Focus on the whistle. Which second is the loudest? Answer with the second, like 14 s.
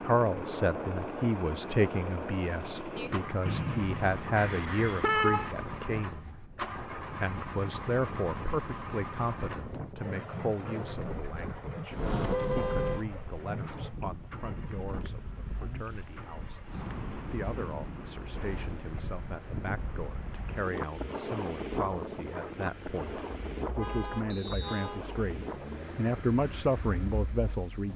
4 s.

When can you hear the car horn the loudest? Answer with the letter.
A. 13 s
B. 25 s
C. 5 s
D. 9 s
C.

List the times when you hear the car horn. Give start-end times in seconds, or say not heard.
4.3-5.5, 11.9-13.1, 23.7-25.1.